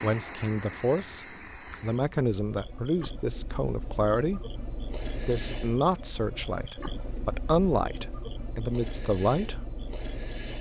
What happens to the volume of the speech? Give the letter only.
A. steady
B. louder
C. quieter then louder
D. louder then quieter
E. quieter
A.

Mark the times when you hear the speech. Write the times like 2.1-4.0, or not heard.
0.0-9.6.